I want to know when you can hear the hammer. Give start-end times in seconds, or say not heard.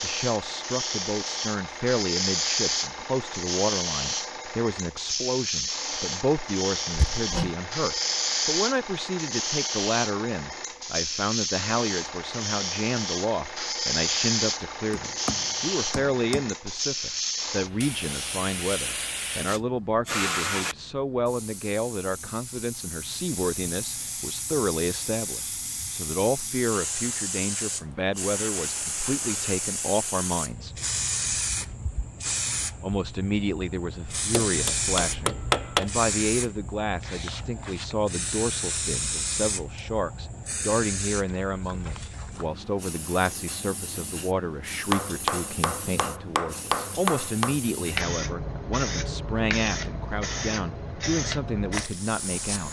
6.9-7.5, 14.9-16.5, 34.3-35.9, 44.9-47.5.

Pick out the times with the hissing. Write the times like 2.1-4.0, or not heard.
0.0-52.6.